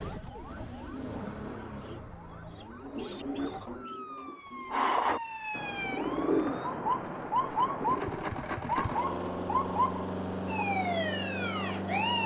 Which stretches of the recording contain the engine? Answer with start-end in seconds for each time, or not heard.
0.0-4.3, 7.8-12.2.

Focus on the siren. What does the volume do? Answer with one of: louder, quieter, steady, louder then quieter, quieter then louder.
louder.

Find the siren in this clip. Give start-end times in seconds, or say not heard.
0.0-12.2.